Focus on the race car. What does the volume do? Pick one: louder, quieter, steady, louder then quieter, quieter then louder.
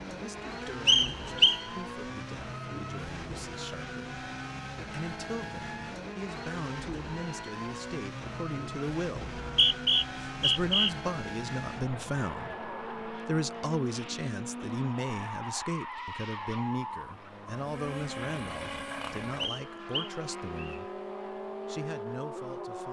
steady.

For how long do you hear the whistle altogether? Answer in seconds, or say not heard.
4 s.